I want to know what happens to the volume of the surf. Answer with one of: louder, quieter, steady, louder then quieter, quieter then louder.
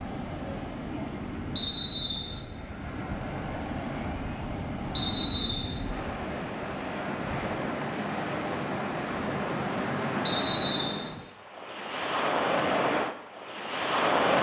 louder.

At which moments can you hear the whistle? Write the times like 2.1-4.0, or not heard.
1.6-2.4, 4.9-5.8, 10.2-11.1.